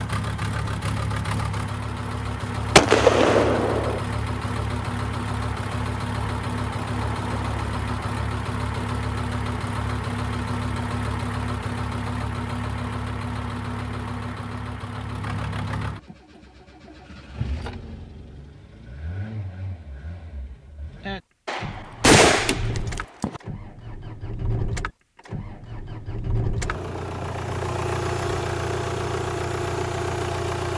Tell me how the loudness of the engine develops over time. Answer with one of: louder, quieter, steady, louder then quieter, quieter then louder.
quieter then louder.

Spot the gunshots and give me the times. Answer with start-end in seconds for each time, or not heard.
2.8-4.0, 21.4-23.4.